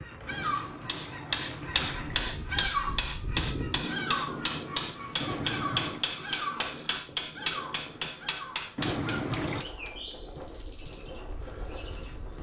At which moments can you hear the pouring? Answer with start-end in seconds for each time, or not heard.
0.3-2.3, 5.2-6.0, 8.8-9.7.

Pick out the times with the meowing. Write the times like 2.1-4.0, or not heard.
not heard.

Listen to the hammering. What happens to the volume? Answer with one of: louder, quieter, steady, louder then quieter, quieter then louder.
quieter.